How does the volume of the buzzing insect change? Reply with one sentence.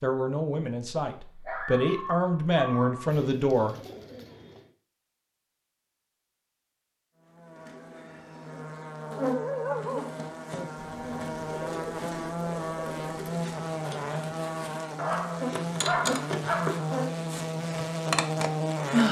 The loudness of the buzzing insect goes up.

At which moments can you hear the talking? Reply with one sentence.
You can hear the talking from 0.0 to 3.8 s.